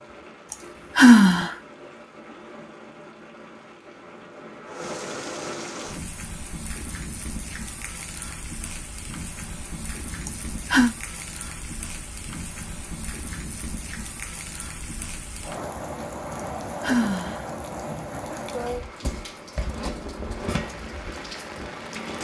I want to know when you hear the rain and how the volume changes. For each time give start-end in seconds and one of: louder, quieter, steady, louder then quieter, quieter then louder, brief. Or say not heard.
0.0-22.2 louder.